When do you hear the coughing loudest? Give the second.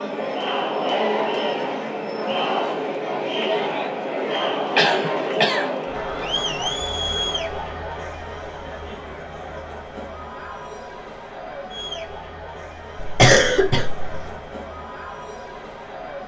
13 s.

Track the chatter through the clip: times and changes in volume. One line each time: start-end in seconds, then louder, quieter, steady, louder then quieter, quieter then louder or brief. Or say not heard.
0.0-16.2 quieter.